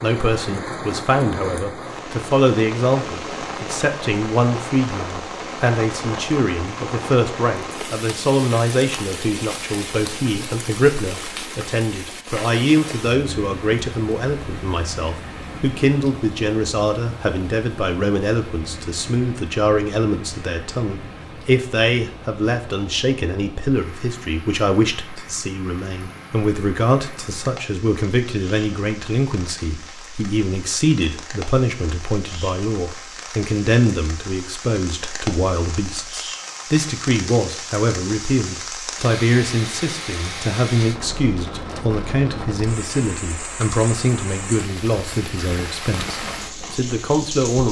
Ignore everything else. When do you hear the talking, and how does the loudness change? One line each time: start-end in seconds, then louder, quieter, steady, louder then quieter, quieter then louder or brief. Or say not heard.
0.0-47.6 steady.